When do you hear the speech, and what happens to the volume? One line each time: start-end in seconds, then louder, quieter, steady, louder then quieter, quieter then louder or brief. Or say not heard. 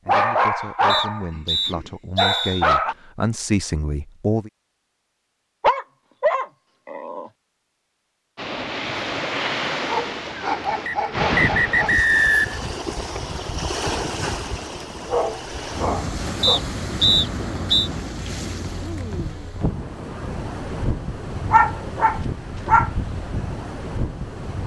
0.0-4.5 louder.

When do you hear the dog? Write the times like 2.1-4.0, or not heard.
0.1-3.0, 5.6-7.3, 9.8-11.9, 15.1-16.6, 21.5-22.9.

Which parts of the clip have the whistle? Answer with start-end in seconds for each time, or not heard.
0.8-2.6, 10.8-12.7, 16.4-17.9.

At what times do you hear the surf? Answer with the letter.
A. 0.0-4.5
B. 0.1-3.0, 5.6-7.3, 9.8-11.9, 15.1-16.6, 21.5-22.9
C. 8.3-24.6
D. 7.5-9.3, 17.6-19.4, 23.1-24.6
C.